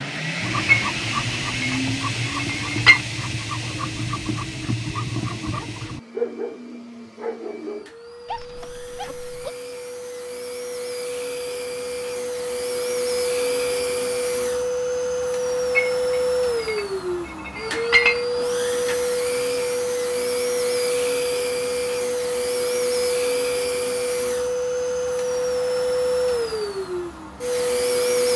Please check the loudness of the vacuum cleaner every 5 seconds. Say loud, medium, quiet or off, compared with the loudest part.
medium, quiet, loud, loud, loud, loud.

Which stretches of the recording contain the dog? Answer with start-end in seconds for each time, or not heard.
0.4-9.5.